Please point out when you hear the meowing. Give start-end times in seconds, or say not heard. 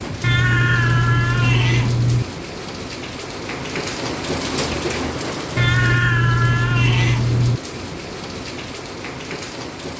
0.2-2.2, 5.5-7.6.